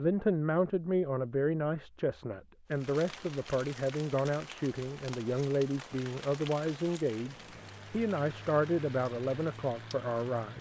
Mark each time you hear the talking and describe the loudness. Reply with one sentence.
The talking can be heard from 0.0 to 10.5 s, at a steady volume.